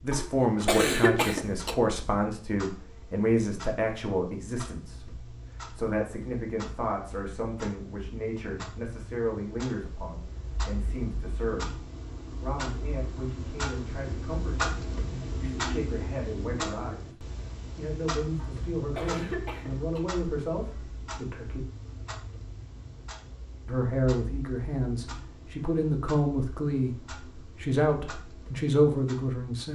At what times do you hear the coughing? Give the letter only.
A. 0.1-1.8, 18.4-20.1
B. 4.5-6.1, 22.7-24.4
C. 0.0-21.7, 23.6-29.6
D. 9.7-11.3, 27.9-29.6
A.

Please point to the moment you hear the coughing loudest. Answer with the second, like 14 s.
1 s.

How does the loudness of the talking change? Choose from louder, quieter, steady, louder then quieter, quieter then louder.
quieter then louder.